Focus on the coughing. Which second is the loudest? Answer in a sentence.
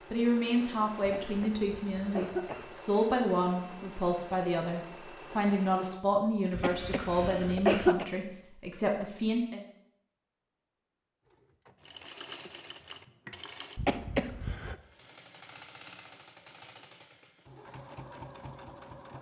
The volume of the coughing peaks at 8 seconds.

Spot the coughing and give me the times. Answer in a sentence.
You can hear the coughing from 1.0 to 2.7 s, from 6.5 to 8.1 s and from 13.8 to 14.8 s.